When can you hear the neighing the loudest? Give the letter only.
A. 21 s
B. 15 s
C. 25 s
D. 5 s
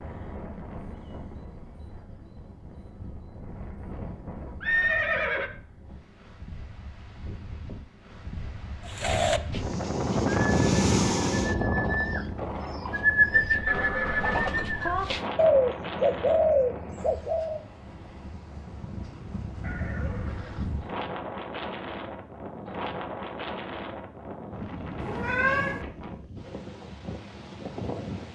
D.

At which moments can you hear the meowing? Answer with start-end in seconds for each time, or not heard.
24.9-25.9.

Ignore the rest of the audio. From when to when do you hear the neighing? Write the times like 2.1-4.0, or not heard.
4.6-5.5, 13.7-15.1, 19.6-20.7.